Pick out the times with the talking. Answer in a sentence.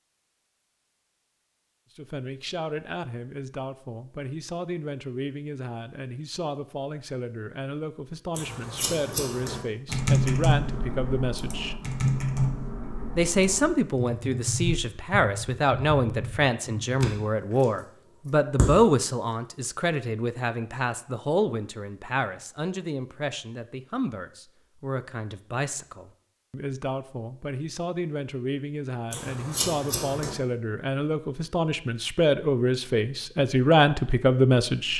The talking can be heard from 1.9 to 11.8 s and from 13.2 to 34.9 s.